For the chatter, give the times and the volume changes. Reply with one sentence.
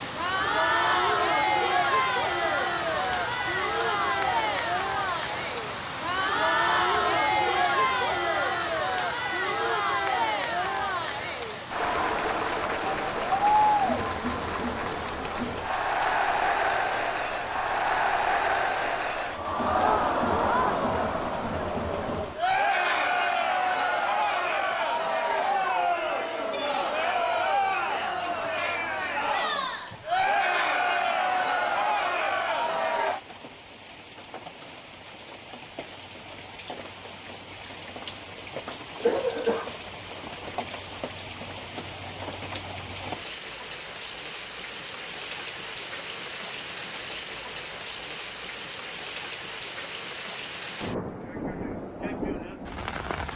The chatter can be heard from 0.0 to 33.2 s, at a steady volume.